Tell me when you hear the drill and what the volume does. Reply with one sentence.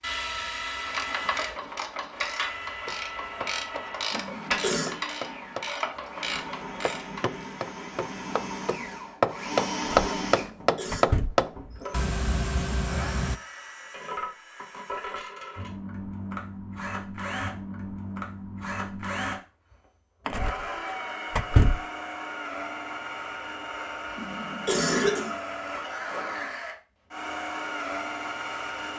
You can hear the drill from 0.0 to 28.9 s, at a steady volume.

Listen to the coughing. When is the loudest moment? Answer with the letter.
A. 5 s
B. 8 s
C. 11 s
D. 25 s
D.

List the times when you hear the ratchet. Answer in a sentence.
The ratchet can be heard from 0.7 to 7.4 s.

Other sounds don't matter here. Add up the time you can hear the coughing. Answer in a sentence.
You can hear the coughing for 3 seconds altogether.